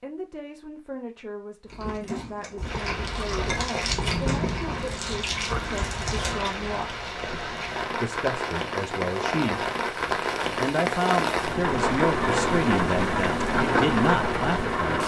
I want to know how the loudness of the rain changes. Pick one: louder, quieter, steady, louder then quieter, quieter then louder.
louder.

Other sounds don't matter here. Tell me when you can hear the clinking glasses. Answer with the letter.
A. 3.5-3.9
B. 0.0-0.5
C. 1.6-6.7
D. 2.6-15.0
A.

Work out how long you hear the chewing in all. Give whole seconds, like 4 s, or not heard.
5 s.